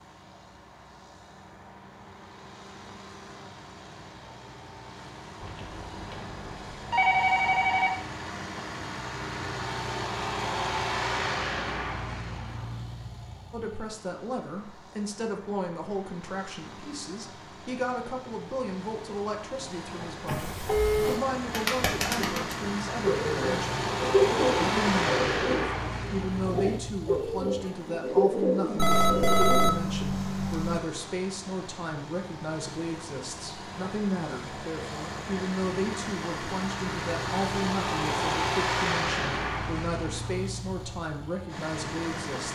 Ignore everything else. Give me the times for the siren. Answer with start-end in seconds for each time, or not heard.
not heard.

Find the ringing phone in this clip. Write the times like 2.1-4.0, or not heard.
5.4-8.0, 20.2-21.2, 28.8-30.8.